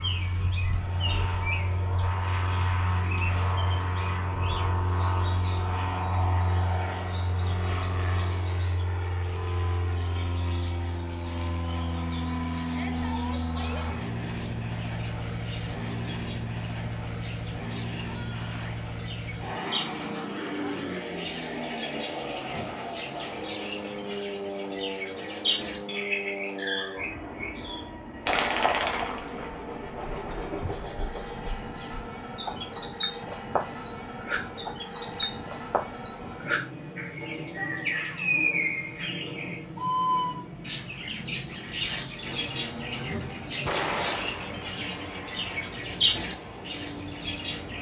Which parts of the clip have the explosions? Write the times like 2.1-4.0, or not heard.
43.6-44.7.